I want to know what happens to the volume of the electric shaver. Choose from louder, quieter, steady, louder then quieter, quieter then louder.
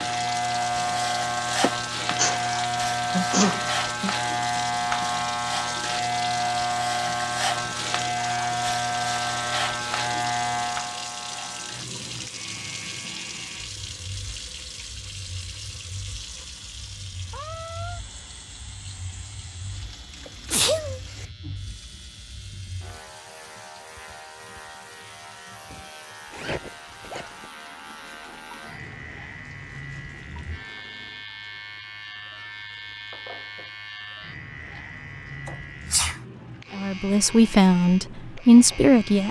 quieter then louder.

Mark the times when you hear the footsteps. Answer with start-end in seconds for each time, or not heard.
not heard.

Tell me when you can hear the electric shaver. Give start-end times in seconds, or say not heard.
0.0-39.2.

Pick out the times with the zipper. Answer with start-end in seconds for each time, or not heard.
26.3-27.5.